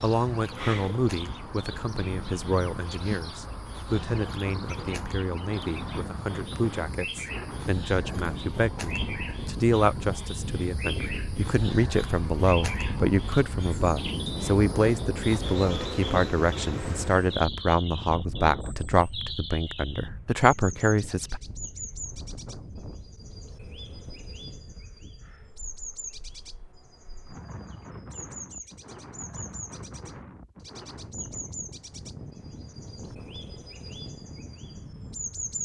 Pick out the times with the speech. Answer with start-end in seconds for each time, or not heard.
0.0-21.4.